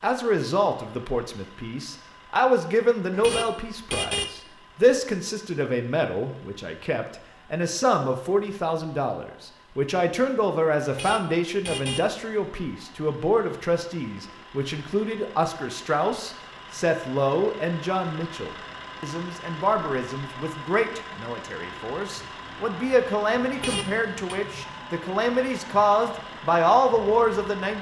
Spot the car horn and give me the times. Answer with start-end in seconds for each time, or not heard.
3.1-4.3, 10.8-12.1, 23.5-24.4.